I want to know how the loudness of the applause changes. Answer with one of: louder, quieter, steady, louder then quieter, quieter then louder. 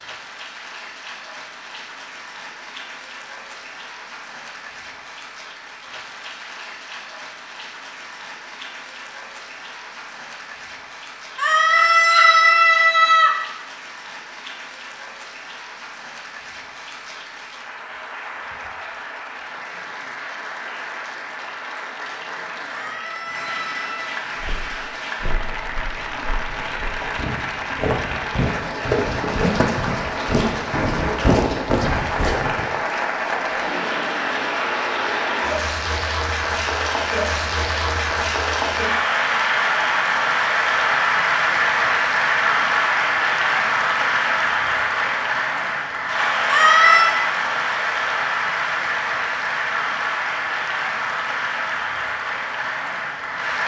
louder.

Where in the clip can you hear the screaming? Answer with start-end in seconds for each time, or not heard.
11.3-13.3, 22.7-24.1, 46.5-47.1.